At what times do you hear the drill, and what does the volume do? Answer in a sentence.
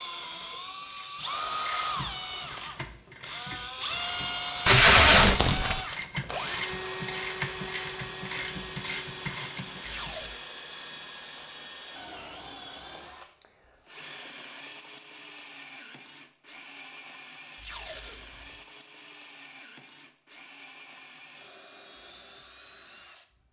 You can hear the drill from 0.0 to 23.4 s, getting quieter.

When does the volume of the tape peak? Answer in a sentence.
The volume of the tape peaks at 5 seconds.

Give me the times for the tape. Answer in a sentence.
You can hear the tape from 4.7 to 5.8 s, from 9.8 to 10.4 s and from 17.6 to 18.2 s.